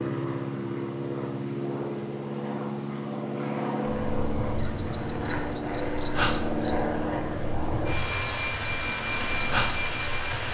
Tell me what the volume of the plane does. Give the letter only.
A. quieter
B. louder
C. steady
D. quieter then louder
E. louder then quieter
C.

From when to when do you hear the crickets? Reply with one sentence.
The crickets can be heard from 3.9 to 10.4 s.